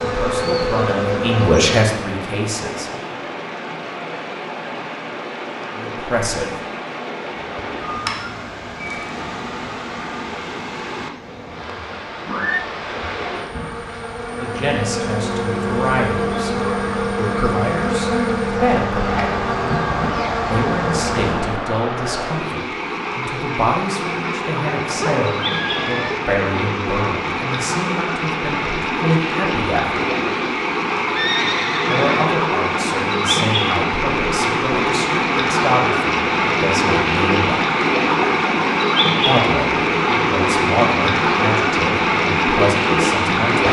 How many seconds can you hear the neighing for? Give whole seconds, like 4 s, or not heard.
3 s.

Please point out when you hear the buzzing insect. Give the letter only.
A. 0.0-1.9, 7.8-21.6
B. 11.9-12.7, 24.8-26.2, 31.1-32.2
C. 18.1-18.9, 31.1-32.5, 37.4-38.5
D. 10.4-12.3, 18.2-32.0
A.